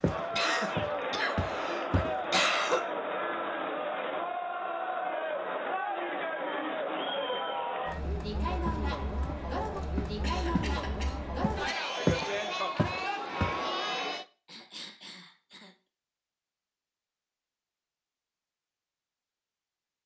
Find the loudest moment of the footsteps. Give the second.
12 s.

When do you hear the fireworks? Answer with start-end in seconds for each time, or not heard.
not heard.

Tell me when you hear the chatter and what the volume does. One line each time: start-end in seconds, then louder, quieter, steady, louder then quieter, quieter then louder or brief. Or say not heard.
0.0-14.2 steady.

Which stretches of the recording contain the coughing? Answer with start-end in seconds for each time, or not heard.
0.3-2.8, 9.8-11.8, 14.4-15.8.